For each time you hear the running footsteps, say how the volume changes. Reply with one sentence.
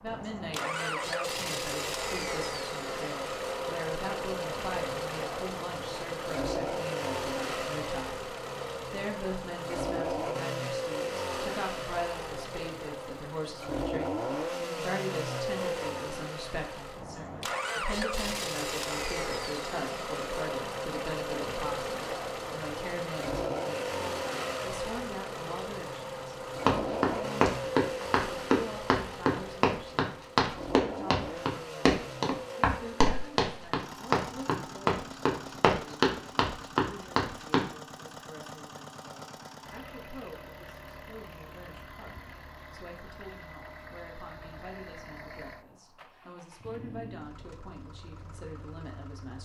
The running footsteps can be heard from 26.6 to 37.7 s, at a steady volume.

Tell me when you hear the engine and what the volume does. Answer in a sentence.
The engine can be heard from 0.0 to 49.4 s, getting quieter.